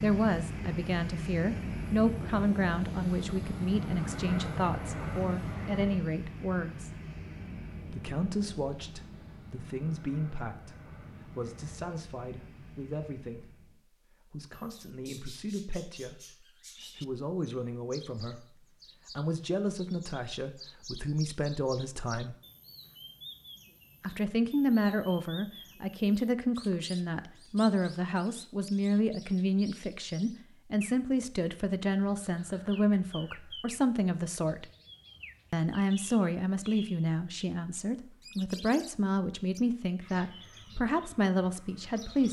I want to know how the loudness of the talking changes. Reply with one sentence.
The volume of the talking goes down, then up.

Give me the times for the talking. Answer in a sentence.
You can hear the talking from 0.0 to 7.0 s, from 7.8 to 22.4 s, from 24.0 to 34.6 s and from 35.5 to 42.2 s.